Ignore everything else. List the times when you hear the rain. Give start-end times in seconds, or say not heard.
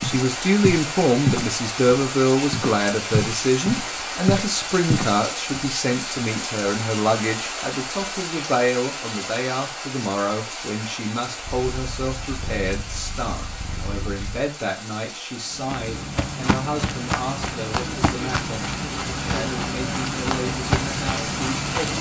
0.0-21.9.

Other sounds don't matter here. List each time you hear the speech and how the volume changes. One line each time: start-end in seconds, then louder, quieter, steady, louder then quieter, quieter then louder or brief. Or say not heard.
0.0-21.9 quieter.